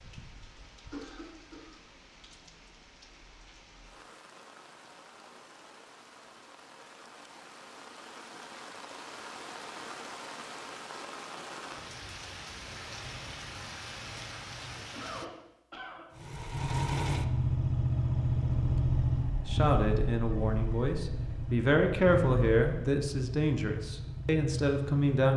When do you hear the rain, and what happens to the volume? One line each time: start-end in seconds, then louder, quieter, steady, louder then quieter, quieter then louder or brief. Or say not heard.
0.0-15.2 louder.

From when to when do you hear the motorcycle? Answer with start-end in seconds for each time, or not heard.
16.1-25.2.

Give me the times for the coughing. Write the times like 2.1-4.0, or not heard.
0.9-1.8, 14.9-16.1.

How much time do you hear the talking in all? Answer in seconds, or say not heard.
6 s.